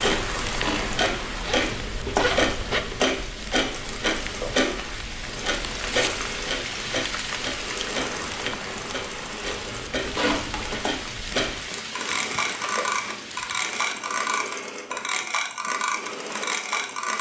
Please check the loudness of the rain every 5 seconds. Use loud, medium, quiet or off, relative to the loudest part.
loud, loud, loud, off.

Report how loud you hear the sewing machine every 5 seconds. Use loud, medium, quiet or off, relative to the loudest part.
loud, medium, loud, medium.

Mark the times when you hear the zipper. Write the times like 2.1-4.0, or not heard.
1.4-3.0, 9.4-10.8.